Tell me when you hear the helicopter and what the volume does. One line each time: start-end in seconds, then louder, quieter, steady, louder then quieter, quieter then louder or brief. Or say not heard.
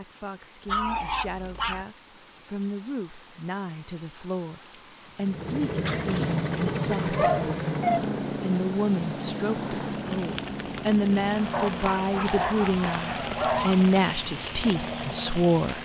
5.2-15.7 quieter.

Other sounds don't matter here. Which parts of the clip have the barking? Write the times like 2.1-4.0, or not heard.
0.7-1.9, 5.8-8.1, 11.5-13.8.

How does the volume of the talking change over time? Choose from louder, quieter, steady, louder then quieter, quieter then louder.
louder.